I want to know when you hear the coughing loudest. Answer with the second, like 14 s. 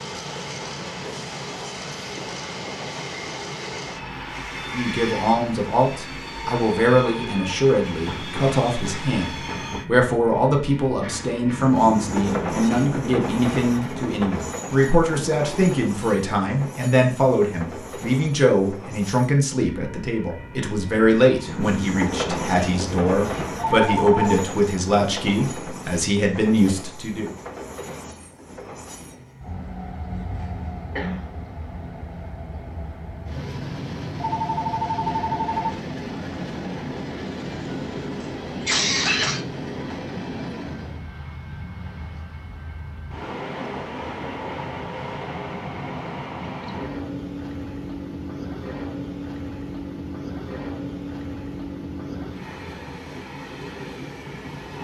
39 s.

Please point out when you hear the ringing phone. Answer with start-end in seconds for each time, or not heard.
23.6-24.4, 34.1-35.7.